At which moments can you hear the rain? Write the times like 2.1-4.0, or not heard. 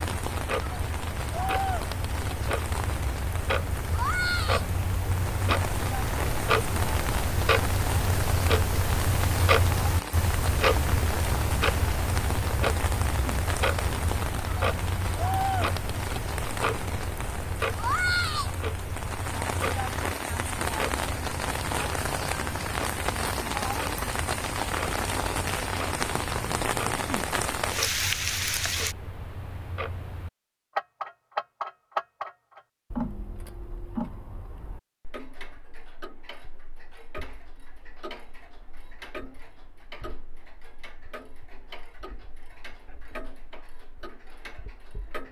0.0-28.9.